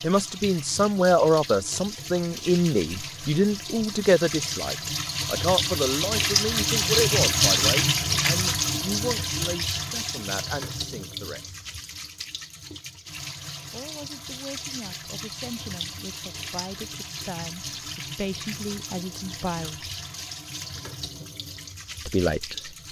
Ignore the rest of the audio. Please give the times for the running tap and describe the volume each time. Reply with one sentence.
You can hear the running tap from 0.0 to 22.8 s, getting louder then quieter.